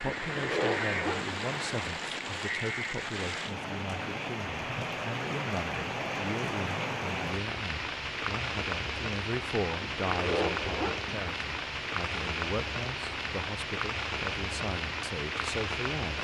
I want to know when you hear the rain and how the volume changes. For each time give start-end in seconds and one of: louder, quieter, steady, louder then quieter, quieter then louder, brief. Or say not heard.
0.0-16.2 steady.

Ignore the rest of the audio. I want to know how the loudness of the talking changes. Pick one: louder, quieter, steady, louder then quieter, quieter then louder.
steady.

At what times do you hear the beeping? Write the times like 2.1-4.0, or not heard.
not heard.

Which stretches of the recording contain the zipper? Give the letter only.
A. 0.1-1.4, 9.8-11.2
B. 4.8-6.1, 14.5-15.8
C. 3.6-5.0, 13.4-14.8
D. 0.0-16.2
A.